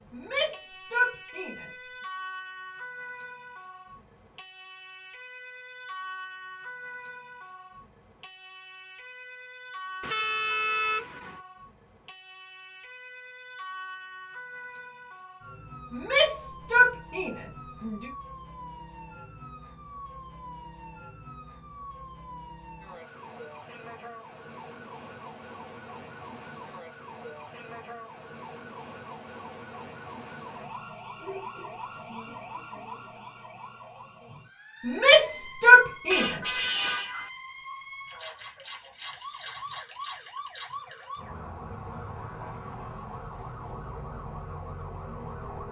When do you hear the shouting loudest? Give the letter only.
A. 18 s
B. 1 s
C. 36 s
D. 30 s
C.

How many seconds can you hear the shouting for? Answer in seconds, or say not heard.
5 s.